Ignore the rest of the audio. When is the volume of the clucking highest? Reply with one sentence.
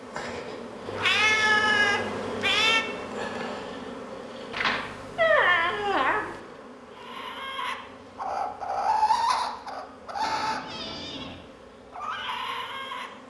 The volume of the clucking peaks at 9 seconds.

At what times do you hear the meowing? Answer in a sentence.
You can hear the meowing from 0.8 to 2.9 s, from 4.5 to 6.3 s and from 10.2 to 11.3 s.